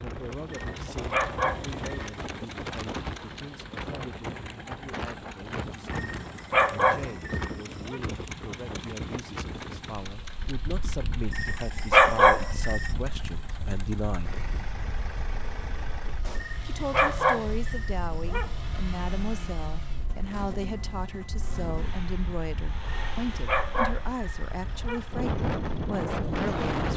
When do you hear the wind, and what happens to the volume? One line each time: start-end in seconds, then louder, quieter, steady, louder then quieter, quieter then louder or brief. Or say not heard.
0.0-26.9 quieter then louder.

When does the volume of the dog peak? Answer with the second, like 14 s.
12 s.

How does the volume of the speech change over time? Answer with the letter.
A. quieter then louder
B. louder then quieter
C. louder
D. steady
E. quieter
C.